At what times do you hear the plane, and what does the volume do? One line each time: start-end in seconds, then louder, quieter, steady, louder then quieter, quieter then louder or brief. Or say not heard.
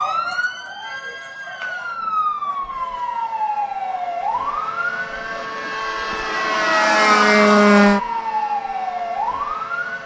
1.9-10.0 louder then quieter.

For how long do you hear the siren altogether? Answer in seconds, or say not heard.
10 s.